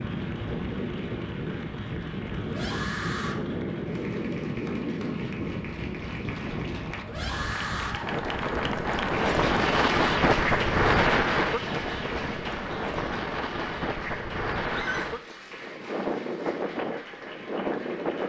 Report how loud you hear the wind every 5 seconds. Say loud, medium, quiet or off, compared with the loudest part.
medium, loud, loud, medium.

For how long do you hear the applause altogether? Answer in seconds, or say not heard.
18 s.